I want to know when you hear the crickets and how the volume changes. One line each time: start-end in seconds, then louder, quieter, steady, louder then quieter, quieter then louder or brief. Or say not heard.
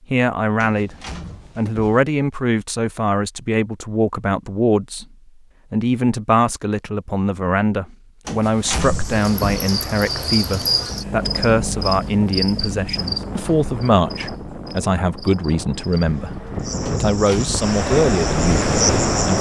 8.8-19.3 quieter then louder.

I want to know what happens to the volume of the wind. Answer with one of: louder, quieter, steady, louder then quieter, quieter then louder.
louder.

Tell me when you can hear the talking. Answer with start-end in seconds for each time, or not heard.
0.1-0.9, 1.6-5.0, 5.7-19.3.